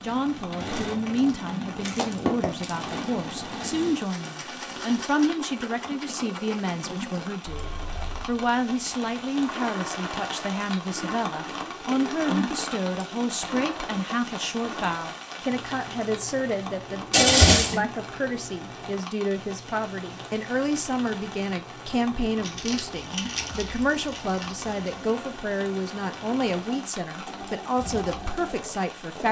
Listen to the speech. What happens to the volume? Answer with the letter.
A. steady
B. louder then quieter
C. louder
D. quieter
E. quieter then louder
A.